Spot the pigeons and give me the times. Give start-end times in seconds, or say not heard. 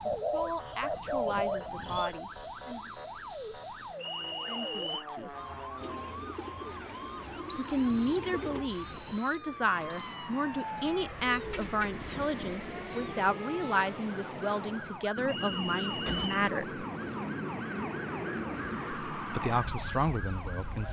0.1-2.1, 5.8-8.7, 10.8-13.3, 16.1-18.9.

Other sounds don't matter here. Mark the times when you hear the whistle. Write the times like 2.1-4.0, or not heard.
4.0-5.0, 7.5-10.2, 15.2-16.2.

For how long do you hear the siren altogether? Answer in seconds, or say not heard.
21 s.